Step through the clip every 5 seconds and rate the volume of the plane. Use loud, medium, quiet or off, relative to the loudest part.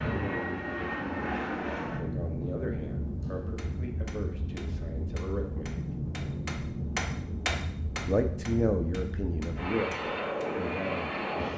loud, medium, loud.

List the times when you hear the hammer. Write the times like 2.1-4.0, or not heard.
3.2-10.5.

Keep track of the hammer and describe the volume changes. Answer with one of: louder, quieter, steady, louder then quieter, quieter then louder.
louder then quieter.